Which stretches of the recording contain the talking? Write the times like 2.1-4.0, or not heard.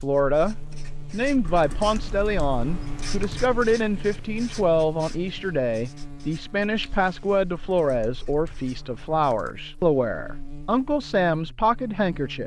0.0-12.4.